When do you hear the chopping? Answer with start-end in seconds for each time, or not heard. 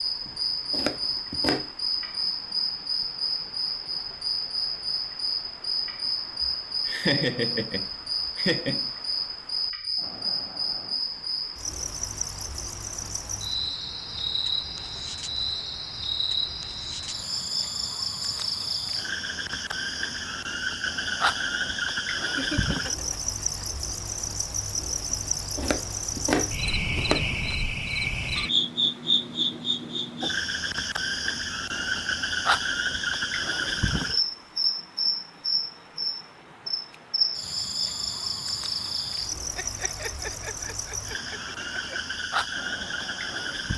0.2-1.7, 25.1-27.3.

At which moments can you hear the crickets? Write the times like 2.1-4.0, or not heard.
0.0-43.7.